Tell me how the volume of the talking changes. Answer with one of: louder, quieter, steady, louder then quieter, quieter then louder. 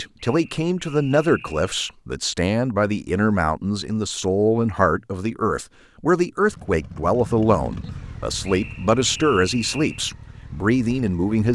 steady.